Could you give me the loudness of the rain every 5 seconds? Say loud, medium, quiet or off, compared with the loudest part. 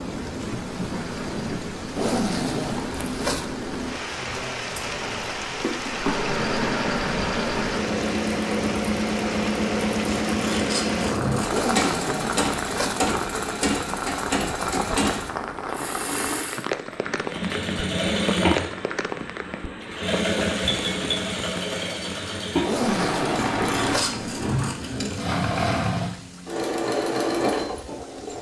loud, loud, loud, loud, medium, quiet.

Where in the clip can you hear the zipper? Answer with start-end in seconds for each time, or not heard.
1.9-3.5, 11.4-13.0, 22.6-24.1.